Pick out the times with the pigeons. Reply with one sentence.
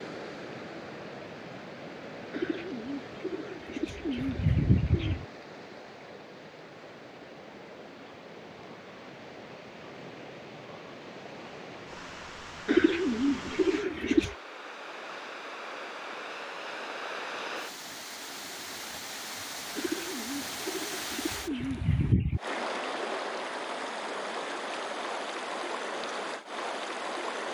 The pigeons can be heard from 2.3 to 5.2 s, from 12.7 to 14.3 s and from 19.8 to 22.4 s.